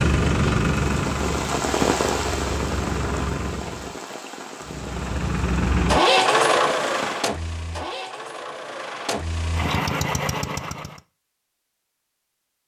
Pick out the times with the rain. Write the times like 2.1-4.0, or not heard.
0.0-7.3.